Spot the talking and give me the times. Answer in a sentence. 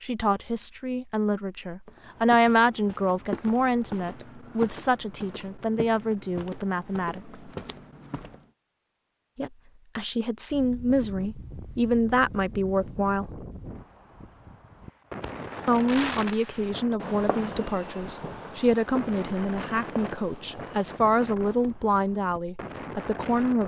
You can hear the talking from 0.0 to 7.5 s, from 9.3 to 13.2 s and from 15.7 to 23.6 s.